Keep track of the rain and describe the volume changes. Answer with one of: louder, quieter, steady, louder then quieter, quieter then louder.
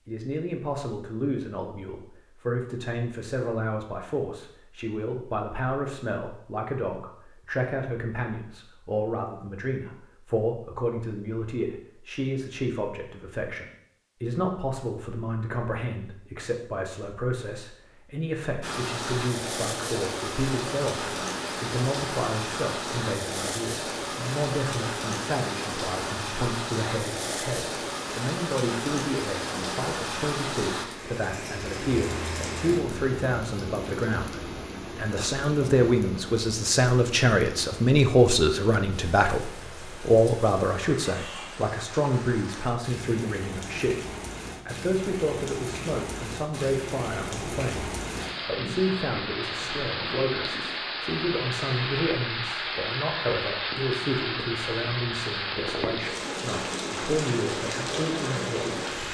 quieter then louder.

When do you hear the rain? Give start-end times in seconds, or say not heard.
18.6-59.1.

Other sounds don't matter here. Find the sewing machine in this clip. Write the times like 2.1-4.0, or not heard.
not heard.